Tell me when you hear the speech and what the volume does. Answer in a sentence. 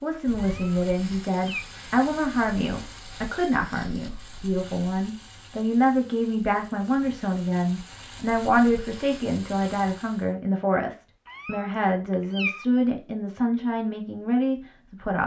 The speech can be heard from 0.0 to 15.2 s, at a steady volume.